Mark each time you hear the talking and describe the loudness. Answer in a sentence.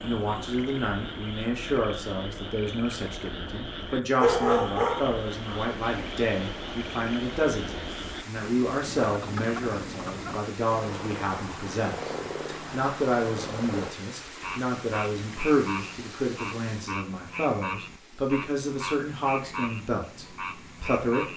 The talking can be heard from 0.0 to 21.3 s, at a steady volume.